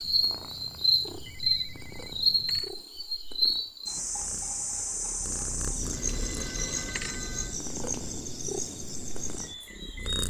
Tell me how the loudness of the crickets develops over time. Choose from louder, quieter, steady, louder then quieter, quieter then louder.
quieter.